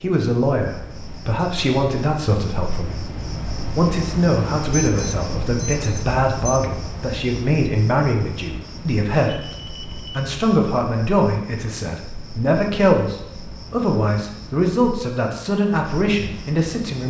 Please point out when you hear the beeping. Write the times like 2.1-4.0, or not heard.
4.7-6.6, 9.3-10.1.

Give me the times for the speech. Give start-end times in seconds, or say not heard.
0.0-17.0.